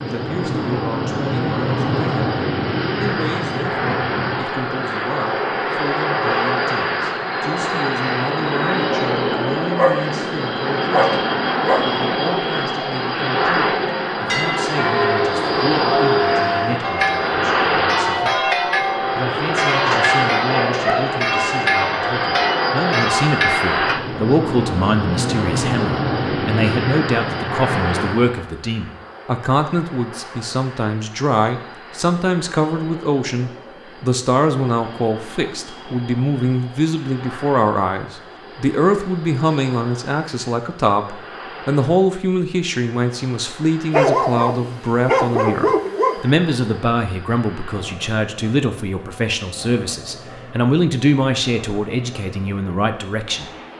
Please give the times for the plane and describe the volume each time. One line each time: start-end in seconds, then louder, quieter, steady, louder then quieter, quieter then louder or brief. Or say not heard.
0.0-53.7 quieter.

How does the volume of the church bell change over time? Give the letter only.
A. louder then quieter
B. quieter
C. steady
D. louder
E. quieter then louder
C.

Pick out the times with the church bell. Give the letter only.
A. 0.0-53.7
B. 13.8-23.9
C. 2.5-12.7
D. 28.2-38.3
B.